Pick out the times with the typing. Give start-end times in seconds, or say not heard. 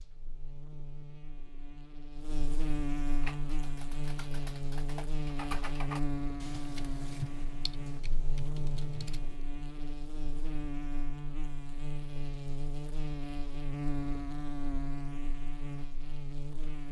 3.2-9.4.